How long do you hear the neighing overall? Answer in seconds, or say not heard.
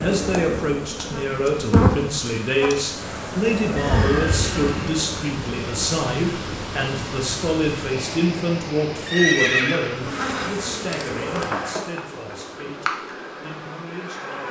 3 s.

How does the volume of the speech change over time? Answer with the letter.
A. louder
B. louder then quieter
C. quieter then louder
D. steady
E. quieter
E.